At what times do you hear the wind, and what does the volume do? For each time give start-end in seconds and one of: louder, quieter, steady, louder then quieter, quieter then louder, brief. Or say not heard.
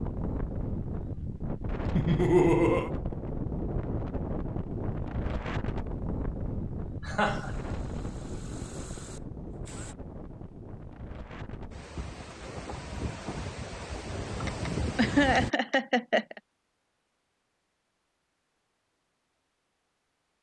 0.0-15.5 quieter then louder.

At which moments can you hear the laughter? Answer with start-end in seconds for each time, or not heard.
1.9-2.9, 7.0-7.8, 14.4-16.4.